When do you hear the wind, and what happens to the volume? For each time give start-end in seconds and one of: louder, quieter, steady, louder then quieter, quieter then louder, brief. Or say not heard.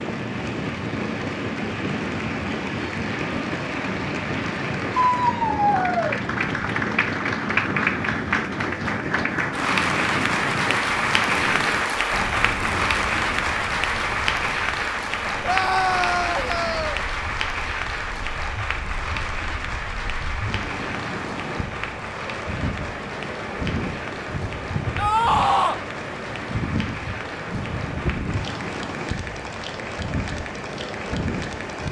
0.0-31.8 quieter then louder.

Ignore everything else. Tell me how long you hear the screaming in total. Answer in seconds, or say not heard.
4 s.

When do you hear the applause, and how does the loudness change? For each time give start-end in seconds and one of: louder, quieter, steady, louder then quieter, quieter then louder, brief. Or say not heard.
0.0-31.8 louder then quieter.